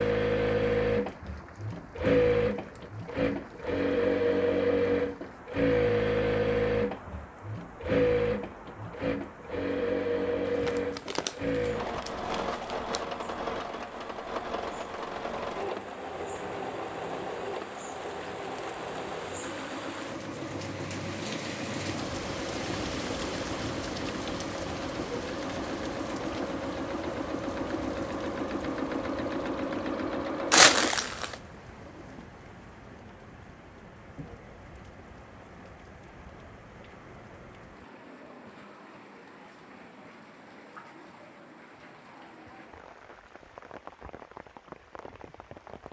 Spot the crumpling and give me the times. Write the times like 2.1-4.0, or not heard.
10.4-13.1, 30.5-31.4.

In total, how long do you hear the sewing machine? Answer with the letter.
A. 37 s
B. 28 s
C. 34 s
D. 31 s
D.